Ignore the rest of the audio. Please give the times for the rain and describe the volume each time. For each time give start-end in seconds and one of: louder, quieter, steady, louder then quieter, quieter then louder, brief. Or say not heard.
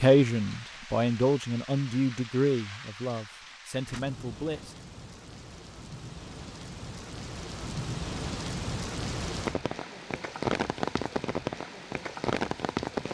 0.0-13.0 louder.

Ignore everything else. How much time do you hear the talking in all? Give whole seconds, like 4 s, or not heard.
5 s.